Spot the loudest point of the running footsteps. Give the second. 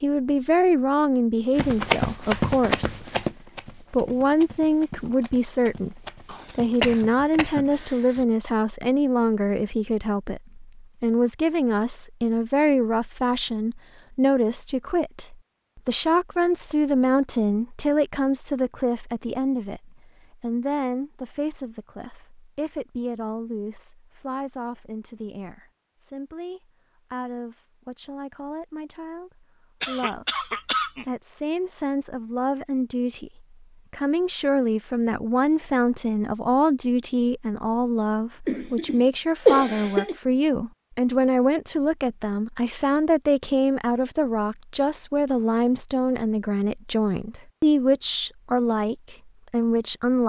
2 s.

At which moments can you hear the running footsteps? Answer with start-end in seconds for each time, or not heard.
1.6-7.8.